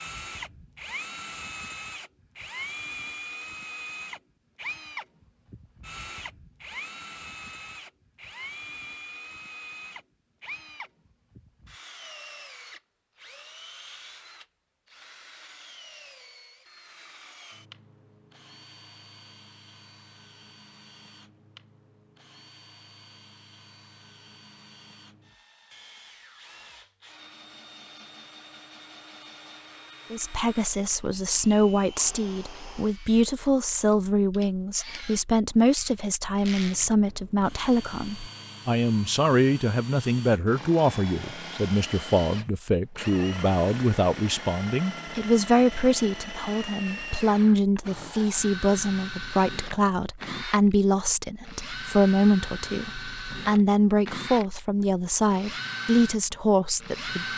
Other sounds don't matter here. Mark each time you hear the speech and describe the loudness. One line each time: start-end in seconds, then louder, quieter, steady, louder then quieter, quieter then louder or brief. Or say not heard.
30.1-57.2 steady.